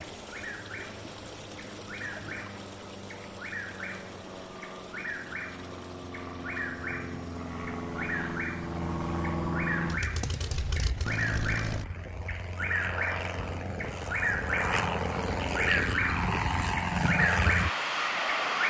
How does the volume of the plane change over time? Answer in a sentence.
The volume of the plane goes up.